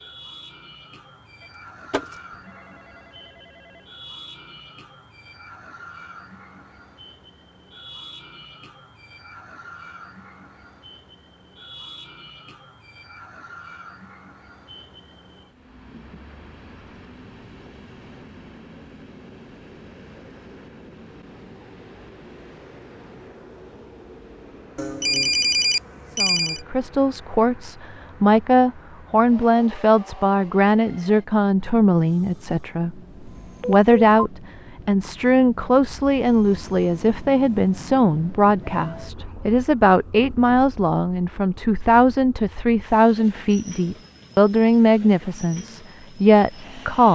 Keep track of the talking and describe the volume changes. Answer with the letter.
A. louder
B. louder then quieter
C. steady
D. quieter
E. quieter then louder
C.